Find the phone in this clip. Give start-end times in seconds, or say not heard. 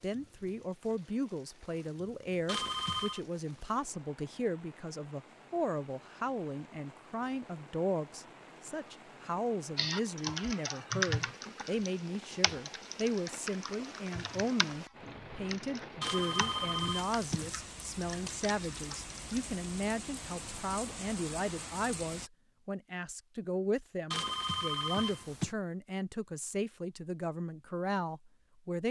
2.5-3.2, 16.0-17.6, 24.1-25.6.